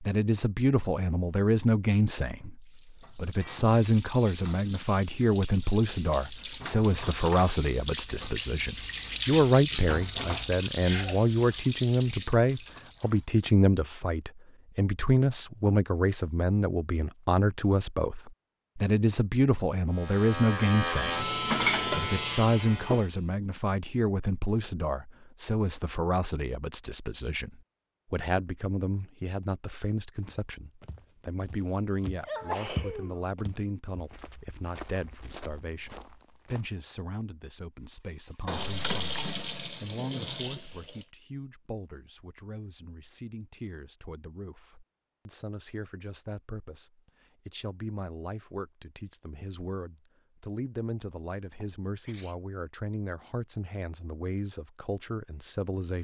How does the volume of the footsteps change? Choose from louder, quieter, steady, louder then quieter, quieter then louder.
louder then quieter.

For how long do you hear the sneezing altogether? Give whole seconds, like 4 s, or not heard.
2 s.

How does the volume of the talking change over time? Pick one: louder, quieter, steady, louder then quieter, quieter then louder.
quieter.